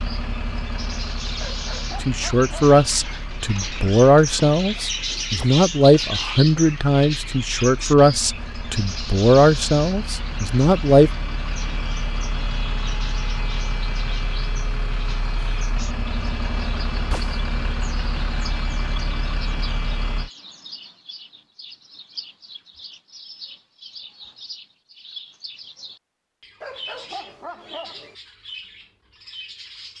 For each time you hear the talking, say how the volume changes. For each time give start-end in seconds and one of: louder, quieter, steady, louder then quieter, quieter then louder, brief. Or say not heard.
2.0-11.1 steady.